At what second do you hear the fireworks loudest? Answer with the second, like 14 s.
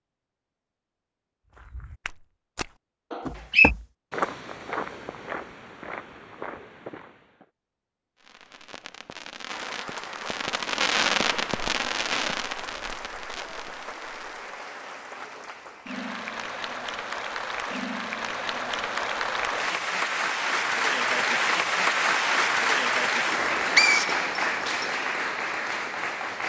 11 s.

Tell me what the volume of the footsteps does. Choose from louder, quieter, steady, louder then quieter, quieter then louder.
louder then quieter.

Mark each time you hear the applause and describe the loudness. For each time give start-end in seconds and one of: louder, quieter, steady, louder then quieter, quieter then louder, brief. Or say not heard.
9.4-26.4 louder.